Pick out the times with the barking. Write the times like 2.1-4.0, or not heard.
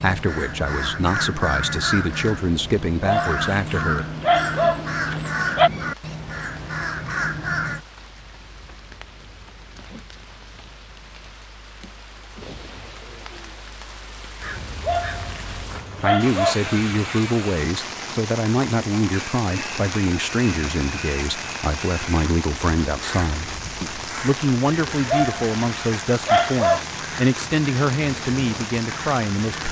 3.0-5.7, 14.8-16.6, 25.1-26.9.